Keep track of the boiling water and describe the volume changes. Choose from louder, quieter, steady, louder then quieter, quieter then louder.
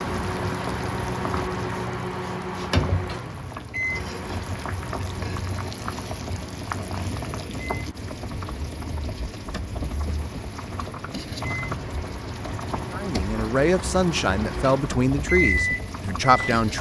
steady.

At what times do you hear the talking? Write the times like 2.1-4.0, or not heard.
12.9-16.7.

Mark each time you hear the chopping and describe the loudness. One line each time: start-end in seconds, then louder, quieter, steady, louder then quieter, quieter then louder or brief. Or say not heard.
not heard.